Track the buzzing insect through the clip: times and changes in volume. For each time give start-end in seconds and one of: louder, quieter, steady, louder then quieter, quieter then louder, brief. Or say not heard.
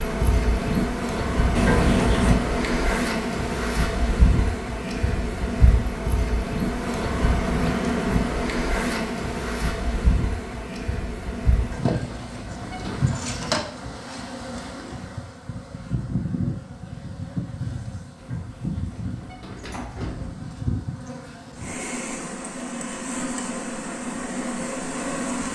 0.0-25.5 quieter.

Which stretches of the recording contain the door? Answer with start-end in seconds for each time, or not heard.
1.6-2.4, 11.6-13.0, 18.1-20.4.